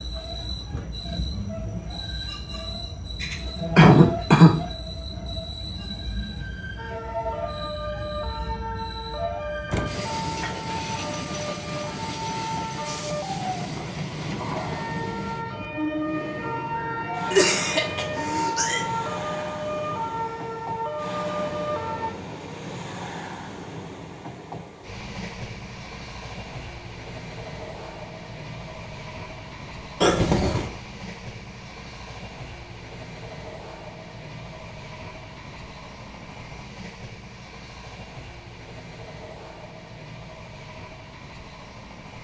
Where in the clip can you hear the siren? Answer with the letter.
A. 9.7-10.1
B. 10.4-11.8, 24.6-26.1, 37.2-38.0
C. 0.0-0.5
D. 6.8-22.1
D.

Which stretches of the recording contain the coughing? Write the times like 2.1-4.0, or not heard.
3.2-4.6, 17.3-18.9, 30.0-30.7.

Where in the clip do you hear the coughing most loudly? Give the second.
4 s.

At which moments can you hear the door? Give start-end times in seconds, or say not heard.
9.7-10.1.